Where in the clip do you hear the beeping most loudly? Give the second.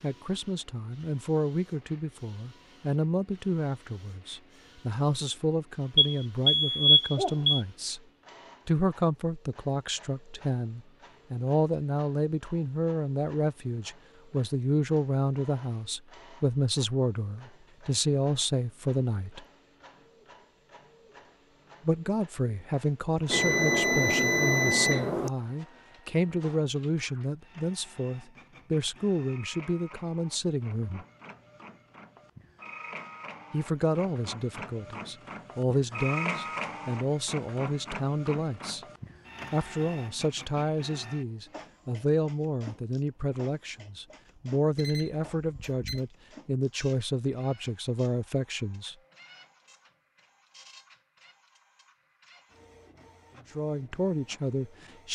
7 s.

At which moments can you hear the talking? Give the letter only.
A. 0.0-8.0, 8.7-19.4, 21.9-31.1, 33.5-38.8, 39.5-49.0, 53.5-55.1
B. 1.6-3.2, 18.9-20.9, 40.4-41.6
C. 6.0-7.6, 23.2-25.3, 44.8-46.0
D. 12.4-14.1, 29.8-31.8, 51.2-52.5
A.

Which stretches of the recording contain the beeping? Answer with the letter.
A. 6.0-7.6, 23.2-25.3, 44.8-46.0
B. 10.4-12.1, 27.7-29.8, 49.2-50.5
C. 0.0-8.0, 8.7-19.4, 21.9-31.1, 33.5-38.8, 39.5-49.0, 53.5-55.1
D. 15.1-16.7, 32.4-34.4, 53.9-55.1
A.